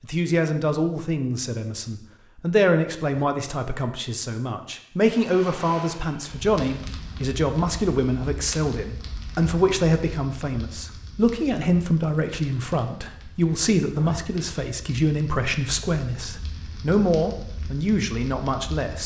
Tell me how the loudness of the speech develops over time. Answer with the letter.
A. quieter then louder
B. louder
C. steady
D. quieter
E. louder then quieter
C.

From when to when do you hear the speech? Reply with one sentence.
The speech can be heard from 0.0 to 19.0 s.